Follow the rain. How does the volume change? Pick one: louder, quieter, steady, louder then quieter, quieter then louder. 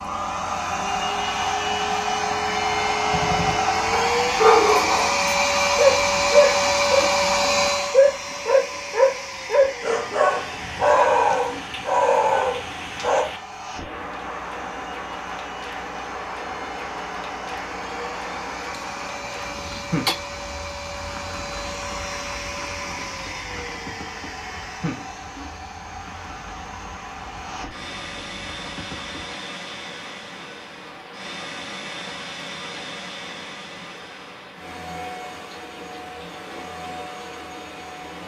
quieter.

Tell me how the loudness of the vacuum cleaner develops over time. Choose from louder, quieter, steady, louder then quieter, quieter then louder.
quieter.